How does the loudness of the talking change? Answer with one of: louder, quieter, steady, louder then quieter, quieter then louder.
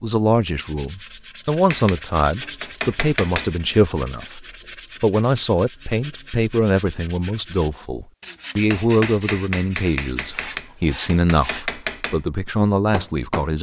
steady.